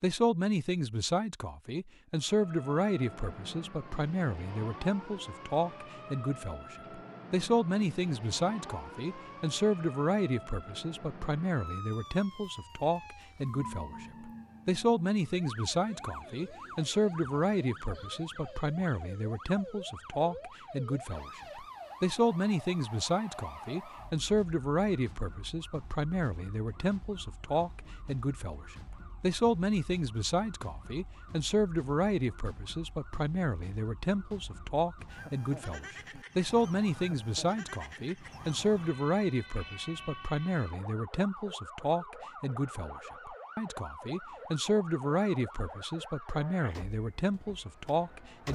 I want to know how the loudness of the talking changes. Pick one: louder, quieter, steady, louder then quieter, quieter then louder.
steady.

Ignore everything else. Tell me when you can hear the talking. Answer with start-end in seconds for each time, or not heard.
0.0-48.5.